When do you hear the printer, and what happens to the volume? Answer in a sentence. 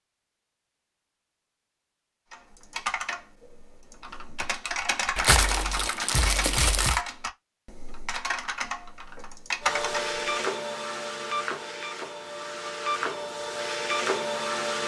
The printer can be heard from 9.6 to 14.8 s, getting quieter then louder.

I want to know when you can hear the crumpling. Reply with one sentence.
The crumpling can be heard from 5.2 to 7.0 s.